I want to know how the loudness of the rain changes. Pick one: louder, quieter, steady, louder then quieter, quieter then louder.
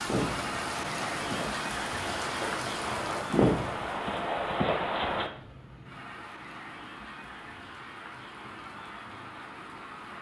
quieter.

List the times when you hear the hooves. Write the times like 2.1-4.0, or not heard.
0.1-5.3.